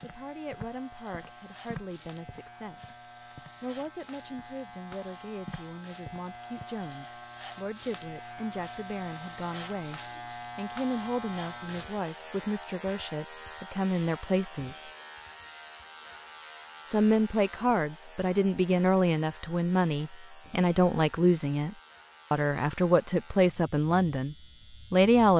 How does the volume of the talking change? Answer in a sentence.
The loudness of the talking goes up.